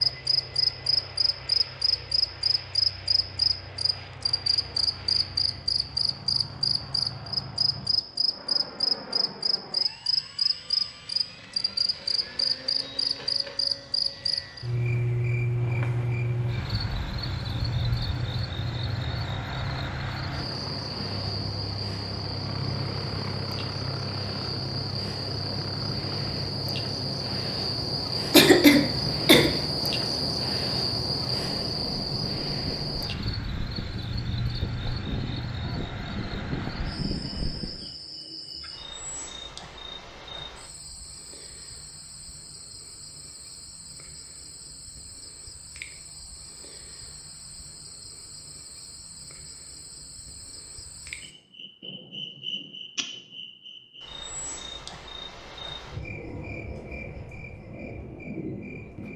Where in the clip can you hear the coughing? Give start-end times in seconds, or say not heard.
28.3-29.5.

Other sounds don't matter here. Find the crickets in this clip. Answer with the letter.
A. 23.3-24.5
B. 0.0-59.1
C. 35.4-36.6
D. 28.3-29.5
B.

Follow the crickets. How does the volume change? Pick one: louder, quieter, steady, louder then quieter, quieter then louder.
quieter.